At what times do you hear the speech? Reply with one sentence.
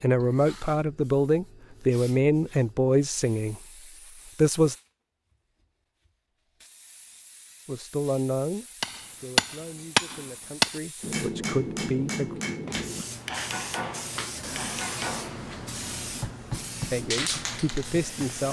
You can hear the speech from 0.0 to 3.6 s, from 4.3 to 4.8 s, from 7.7 to 12.4 s and from 16.9 to 18.4 s.